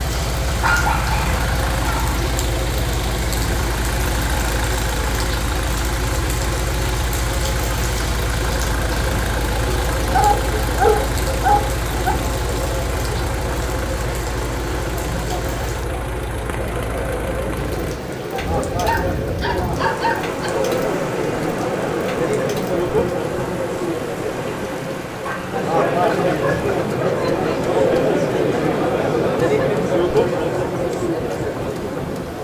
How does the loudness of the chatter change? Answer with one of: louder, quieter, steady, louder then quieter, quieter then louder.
louder.